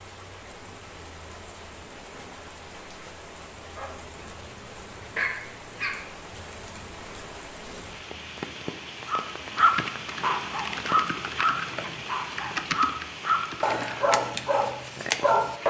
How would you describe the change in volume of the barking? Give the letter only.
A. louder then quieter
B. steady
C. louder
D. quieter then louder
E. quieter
C.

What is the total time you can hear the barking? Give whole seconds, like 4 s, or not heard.
10 s.